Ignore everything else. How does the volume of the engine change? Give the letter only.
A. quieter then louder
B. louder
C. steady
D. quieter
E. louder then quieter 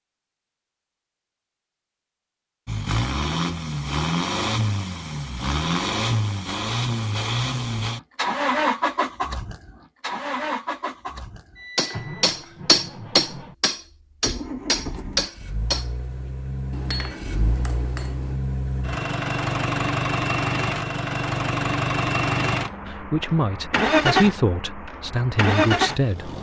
A.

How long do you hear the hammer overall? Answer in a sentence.
The hammer can be heard for 7 seconds in total.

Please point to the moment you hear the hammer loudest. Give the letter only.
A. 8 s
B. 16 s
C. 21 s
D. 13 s
D.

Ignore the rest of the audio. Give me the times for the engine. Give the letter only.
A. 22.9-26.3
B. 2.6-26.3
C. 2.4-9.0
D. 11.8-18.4
B.